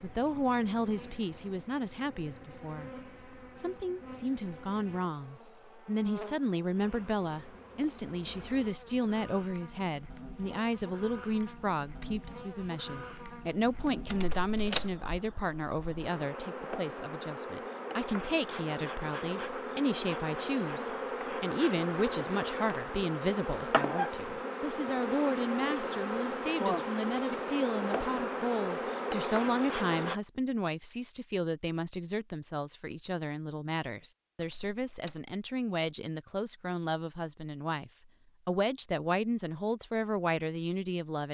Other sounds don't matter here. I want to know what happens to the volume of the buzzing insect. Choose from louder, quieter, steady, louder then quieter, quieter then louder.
louder.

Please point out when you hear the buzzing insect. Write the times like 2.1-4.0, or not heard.
0.0-30.2.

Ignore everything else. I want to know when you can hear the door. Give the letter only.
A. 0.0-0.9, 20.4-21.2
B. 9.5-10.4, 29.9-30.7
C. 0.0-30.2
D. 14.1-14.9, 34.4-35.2
D.